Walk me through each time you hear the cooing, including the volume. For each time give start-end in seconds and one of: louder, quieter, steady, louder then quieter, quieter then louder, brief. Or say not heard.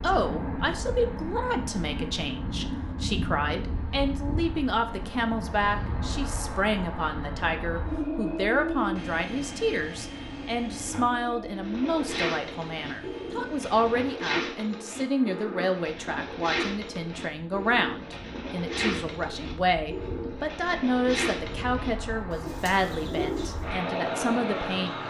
11.6-23.7 steady.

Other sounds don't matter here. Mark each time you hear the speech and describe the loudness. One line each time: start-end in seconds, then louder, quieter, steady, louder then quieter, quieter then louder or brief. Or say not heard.
0.0-25.0 steady.